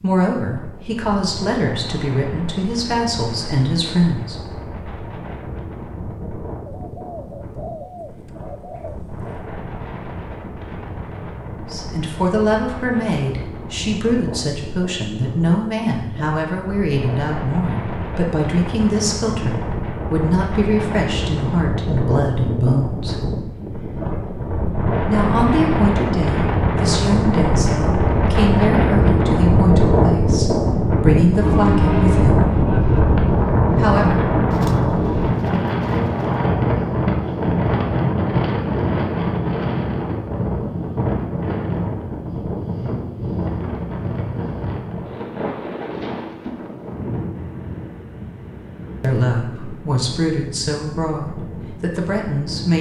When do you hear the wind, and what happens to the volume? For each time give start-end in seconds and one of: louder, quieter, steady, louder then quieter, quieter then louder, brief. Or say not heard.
0.0-52.7 louder then quieter.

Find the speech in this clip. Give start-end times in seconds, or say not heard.
0.0-4.3, 11.7-23.2, 25.1-32.5, 33.8-34.2, 49.0-52.7.